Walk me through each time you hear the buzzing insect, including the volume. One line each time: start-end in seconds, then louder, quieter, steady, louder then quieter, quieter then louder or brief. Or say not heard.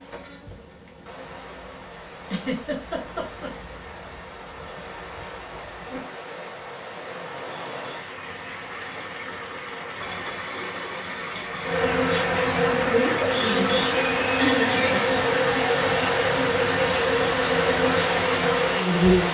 0.0-19.2 louder.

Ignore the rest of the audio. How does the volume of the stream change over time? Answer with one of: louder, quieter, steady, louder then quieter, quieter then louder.
louder.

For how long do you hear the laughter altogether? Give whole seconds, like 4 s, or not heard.
4 s.